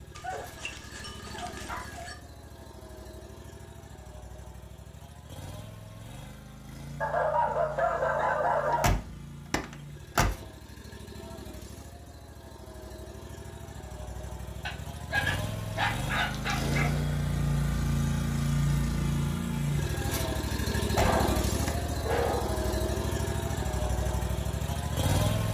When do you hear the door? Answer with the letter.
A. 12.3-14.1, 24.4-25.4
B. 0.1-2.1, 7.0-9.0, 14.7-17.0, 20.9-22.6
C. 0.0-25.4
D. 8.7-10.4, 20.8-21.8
D.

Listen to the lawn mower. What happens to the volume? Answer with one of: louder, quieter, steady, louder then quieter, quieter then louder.
louder.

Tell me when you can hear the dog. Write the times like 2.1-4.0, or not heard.
0.1-2.1, 7.0-9.0, 14.7-17.0, 20.9-22.6.